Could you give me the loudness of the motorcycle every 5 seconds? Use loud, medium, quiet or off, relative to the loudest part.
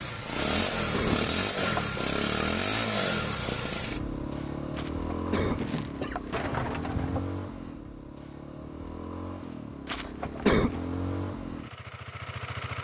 loud, medium, medium.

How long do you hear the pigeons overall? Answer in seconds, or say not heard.
2 s.